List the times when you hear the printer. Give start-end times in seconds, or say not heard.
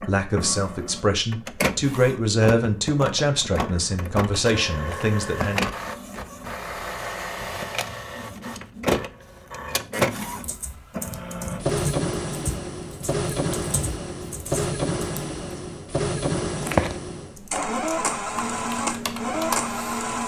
0.0-20.2.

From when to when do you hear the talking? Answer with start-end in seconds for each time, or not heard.
0.1-5.7.